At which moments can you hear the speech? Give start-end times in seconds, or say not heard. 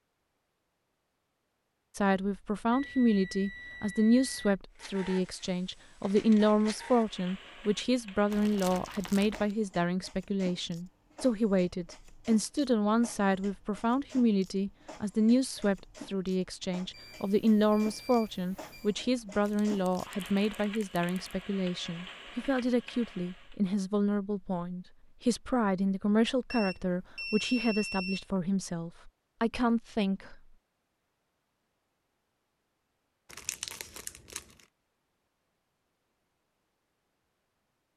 1.9-30.4.